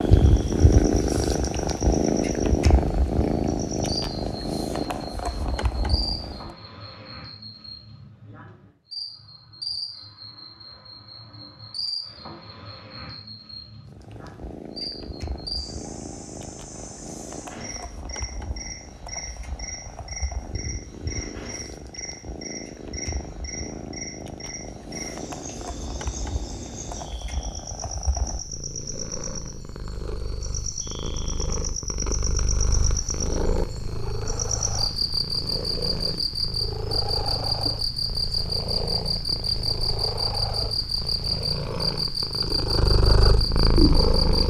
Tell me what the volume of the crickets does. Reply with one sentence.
The volume of the crickets goes up.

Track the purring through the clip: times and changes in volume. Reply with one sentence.
The purring can be heard from 0.0 to 6.5 s, getting quieter; and from 13.8 to 44.4 s, getting louder.